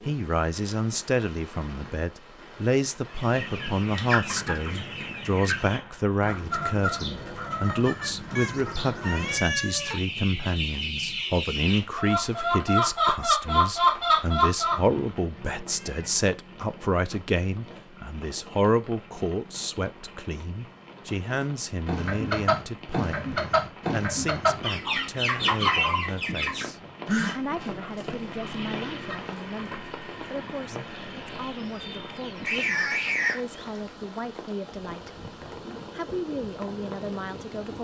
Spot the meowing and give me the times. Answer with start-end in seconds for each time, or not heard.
8.3-9.9, 14.7-16.2, 32.4-33.8.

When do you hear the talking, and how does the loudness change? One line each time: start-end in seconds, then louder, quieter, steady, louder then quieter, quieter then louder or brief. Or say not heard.
0.1-35.3 quieter
35.9-37.7 brief.